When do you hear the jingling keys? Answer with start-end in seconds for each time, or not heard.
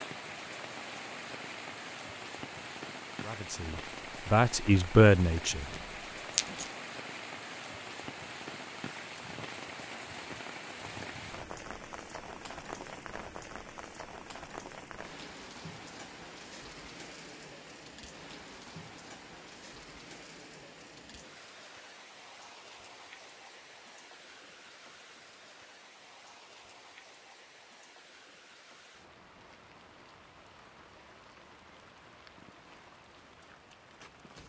5.7-6.8.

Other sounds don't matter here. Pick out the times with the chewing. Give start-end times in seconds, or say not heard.
not heard.